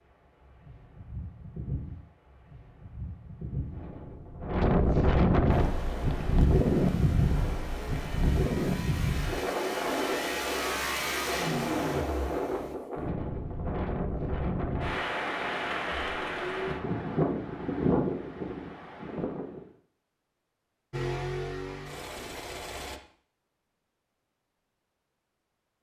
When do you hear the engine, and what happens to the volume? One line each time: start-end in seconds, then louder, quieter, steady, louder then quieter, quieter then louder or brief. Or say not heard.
5.5-12.8 louder
20.9-23.0 brief.